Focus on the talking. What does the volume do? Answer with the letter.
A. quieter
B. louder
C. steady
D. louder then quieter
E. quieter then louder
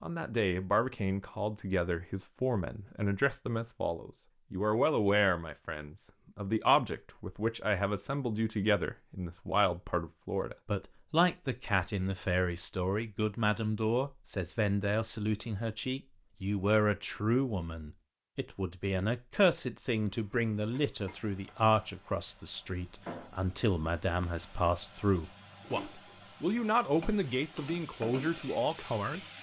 C.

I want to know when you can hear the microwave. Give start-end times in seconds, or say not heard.
not heard.